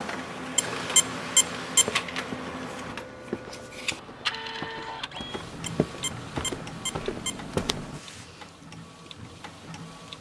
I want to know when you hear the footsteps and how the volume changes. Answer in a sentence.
You can hear the footsteps from 1.8 to 8.0 s, getting louder.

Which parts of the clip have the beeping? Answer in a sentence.
You can hear the beeping from 0.6 to 2.0 s and from 5.7 to 7.4 s.